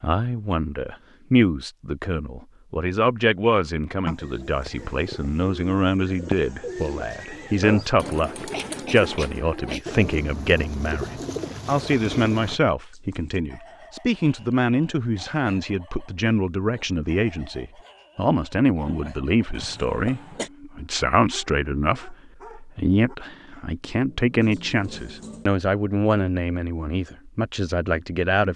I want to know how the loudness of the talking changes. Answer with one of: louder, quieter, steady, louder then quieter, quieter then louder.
steady.